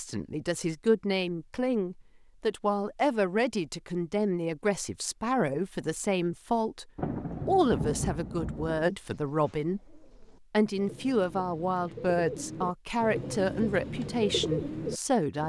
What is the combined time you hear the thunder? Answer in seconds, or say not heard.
2 s.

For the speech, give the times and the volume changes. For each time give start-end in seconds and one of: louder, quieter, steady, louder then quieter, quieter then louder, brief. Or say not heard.
0.0-6.8 steady
7.5-15.4 steady.